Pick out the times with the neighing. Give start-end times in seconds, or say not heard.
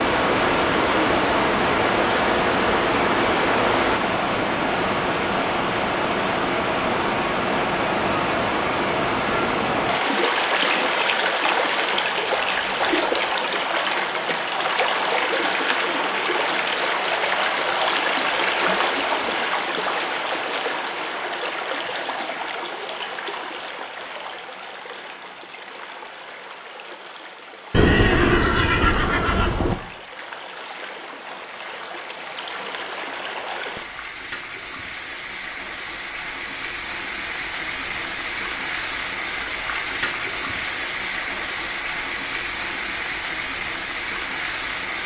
27.7-29.8.